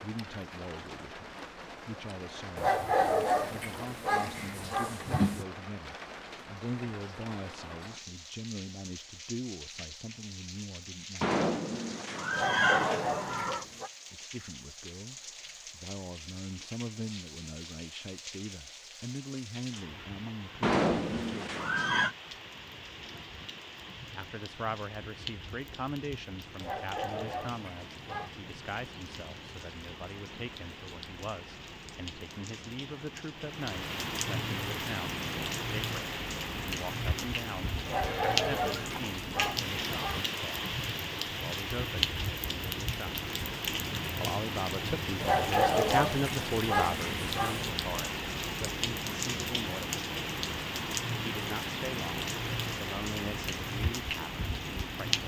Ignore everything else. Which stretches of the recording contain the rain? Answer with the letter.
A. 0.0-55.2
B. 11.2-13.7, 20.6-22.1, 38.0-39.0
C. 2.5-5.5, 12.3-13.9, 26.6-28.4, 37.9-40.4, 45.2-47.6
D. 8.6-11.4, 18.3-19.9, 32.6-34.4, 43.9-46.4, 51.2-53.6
A.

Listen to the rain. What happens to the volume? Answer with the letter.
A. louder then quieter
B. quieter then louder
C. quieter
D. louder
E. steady
D.